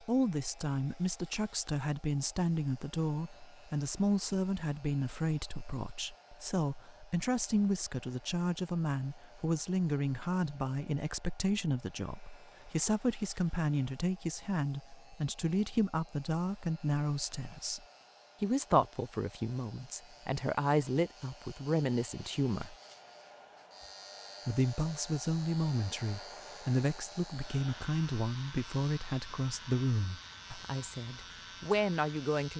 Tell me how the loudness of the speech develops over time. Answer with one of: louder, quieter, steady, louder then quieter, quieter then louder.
steady.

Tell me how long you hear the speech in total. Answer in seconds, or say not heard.
31 s.